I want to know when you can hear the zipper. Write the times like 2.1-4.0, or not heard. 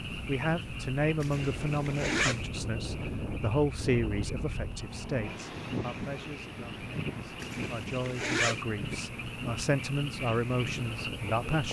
1.2-2.5, 7.4-8.6.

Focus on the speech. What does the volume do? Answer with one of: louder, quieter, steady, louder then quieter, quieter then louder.
quieter then louder.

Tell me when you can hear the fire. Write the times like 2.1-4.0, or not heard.
not heard.